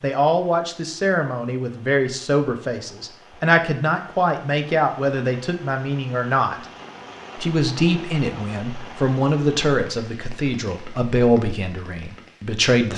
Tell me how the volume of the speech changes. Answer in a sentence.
The volume of the speech stays about the same.